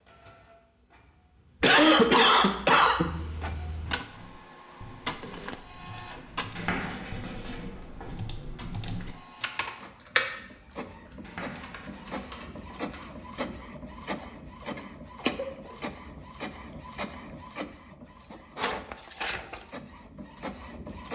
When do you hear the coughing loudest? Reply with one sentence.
The loudest moment of the coughing is at 2 seconds.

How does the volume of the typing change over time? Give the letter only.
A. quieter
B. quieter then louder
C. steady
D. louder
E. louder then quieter
E.